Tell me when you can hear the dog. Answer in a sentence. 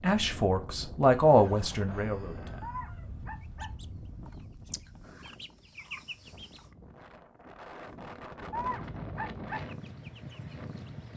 The dog can be heard from 2.6 to 3.8 s and from 8.5 to 9.7 s.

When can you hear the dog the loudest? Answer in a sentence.
The volume of the dog peaks at 9 seconds.